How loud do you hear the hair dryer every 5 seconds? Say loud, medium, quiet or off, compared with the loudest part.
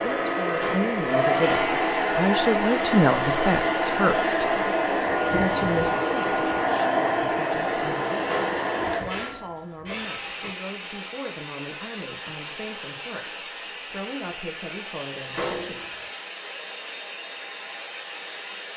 loud, loud, quiet, quiet.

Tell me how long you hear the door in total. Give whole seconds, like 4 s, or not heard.
5 s.